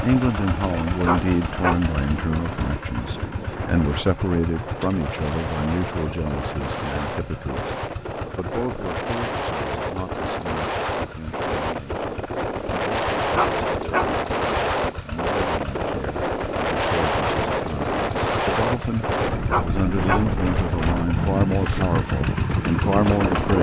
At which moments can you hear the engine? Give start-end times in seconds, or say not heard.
0.0-23.5.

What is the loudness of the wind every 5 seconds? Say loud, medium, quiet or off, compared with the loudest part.
medium, medium, loud, loud, loud.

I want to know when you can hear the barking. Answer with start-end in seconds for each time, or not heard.
1.1-1.9, 13.3-14.2, 19.4-20.3.